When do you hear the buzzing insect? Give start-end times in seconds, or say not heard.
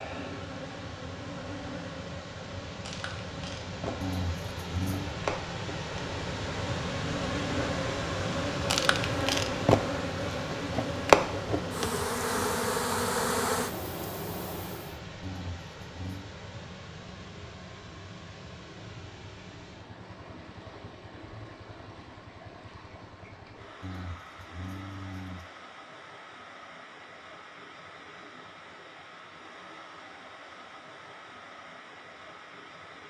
0.0-14.9.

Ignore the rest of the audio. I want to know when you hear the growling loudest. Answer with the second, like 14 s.
4 s.